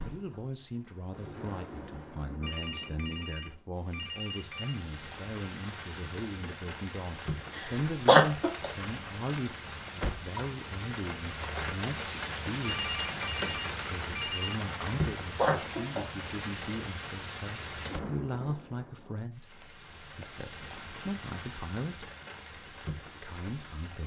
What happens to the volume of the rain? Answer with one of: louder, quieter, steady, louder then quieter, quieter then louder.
louder then quieter.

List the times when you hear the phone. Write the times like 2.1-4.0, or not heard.
2.4-4.8, 12.6-14.6.